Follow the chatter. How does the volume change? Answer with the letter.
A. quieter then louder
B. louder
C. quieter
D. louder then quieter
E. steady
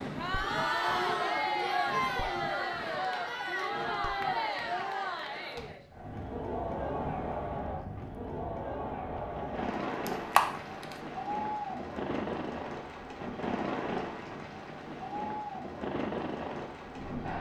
C.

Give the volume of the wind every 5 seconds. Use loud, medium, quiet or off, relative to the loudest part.
medium, medium, loud, loud.